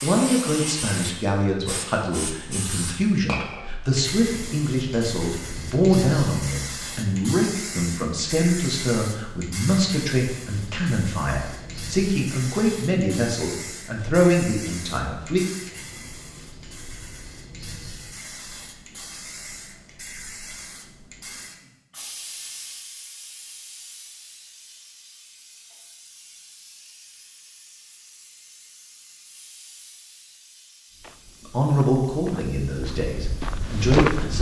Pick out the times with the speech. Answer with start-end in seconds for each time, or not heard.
0.0-15.4, 31.5-34.3.